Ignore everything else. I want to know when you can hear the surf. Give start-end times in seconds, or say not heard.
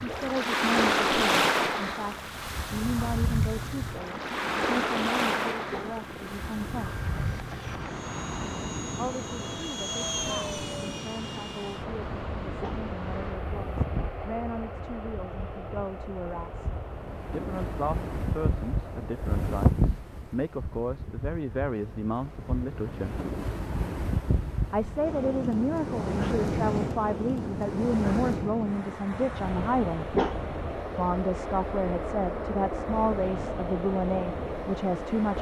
0.0-35.3.